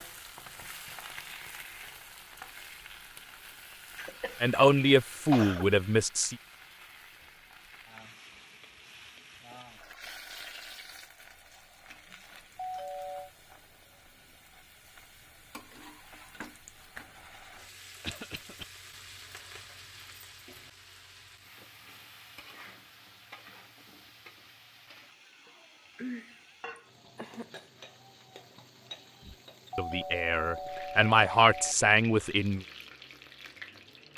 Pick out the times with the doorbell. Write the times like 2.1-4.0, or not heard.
12.6-13.3, 29.7-31.8.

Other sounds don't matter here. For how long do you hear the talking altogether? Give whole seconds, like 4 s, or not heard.
5 s.